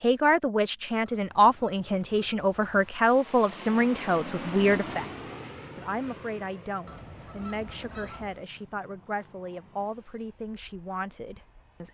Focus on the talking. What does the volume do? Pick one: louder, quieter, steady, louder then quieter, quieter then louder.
quieter.